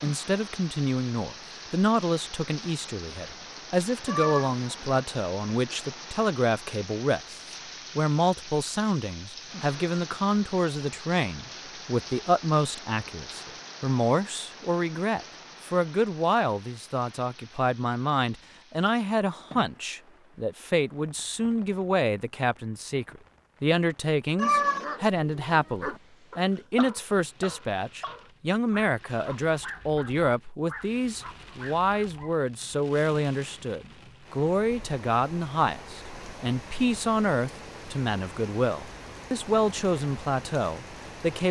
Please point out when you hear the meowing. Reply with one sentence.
You can hear the meowing from 4.0 to 5.0 s and from 24.4 to 24.9 s.